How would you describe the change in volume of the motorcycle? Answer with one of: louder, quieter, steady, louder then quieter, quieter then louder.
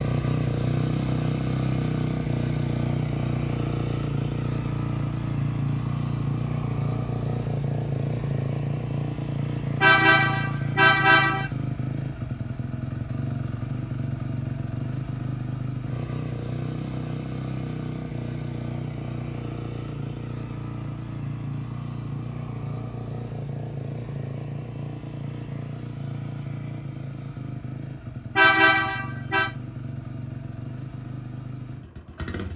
quieter.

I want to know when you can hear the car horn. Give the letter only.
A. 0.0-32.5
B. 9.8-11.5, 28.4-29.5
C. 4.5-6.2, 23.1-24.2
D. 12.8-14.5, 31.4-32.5
B.